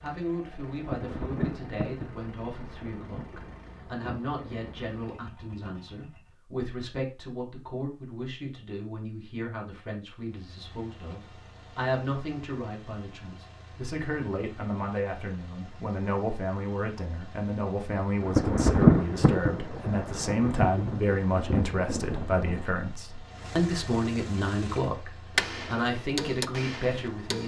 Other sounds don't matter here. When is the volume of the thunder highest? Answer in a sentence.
The volume of the thunder peaks at 19 seconds.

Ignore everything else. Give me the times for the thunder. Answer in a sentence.
You can hear the thunder from 0.8 to 5.0 s and from 18.2 to 22.6 s.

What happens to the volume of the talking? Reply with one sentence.
The volume of the talking goes up.